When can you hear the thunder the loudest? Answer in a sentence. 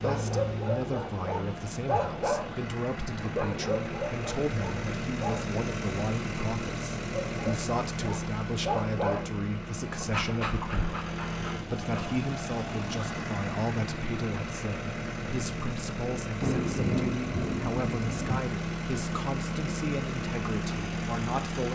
The volume of the thunder peaks at 17 seconds.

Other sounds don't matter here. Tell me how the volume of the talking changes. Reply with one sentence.
The volume of the talking stays about the same.